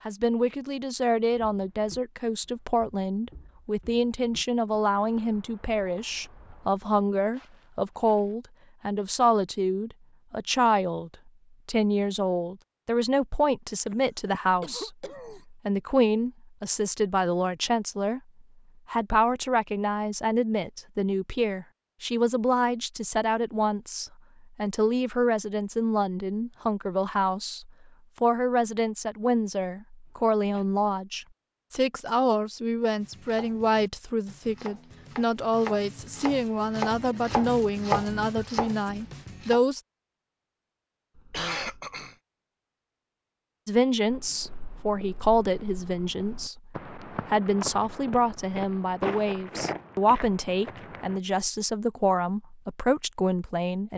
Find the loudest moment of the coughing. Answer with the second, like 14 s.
42 s.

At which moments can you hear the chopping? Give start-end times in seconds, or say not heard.
33.0-39.6.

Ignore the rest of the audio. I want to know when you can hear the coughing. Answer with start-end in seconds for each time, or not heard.
13.8-15.4, 30.1-30.6, 41.1-42.1.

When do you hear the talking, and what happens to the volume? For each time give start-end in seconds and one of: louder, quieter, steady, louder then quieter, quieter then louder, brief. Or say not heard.
0.1-14.9 steady
15.5-18.2 brief
18.9-39.8 steady
43.6-53.9 steady.